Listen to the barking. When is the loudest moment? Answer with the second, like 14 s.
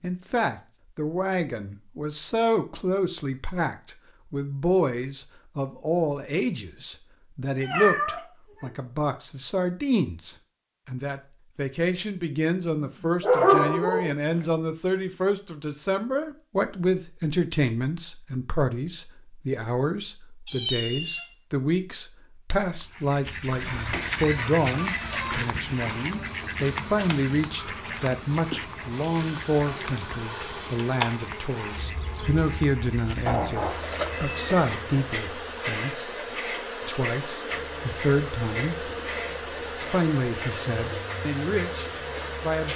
13 s.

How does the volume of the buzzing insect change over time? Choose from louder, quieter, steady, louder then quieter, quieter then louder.
louder.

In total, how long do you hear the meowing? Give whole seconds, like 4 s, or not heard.
3 s.